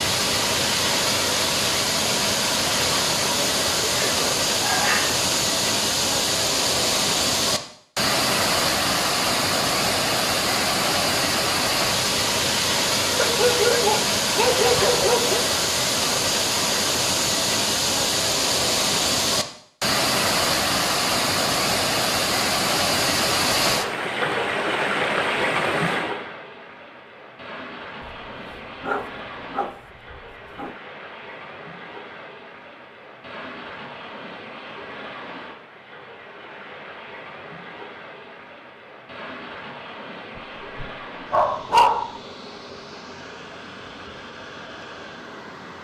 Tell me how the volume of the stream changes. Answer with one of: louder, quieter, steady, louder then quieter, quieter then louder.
quieter.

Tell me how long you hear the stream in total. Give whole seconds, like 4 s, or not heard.
46 s.